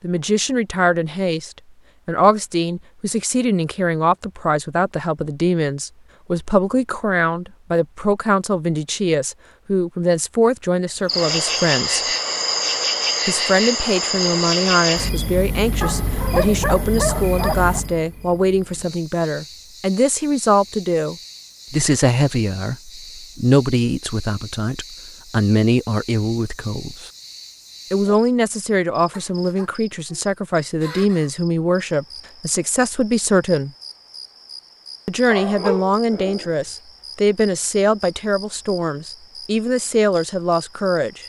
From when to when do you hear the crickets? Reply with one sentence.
You can hear the crickets from 10.9 to 41.2 s.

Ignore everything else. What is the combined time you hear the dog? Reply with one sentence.
You can hear the dog for 3 seconds altogether.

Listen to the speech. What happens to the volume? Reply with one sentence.
The loudness of the speech stays about the same.